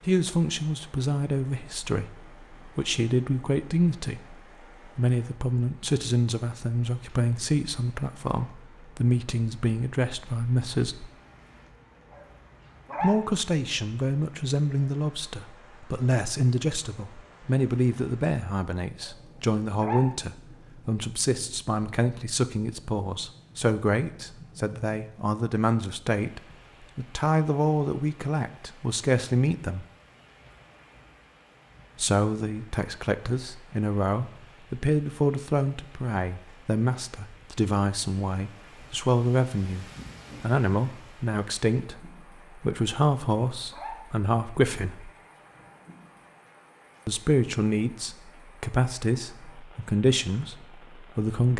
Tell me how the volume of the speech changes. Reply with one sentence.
The volume of the speech stays about the same.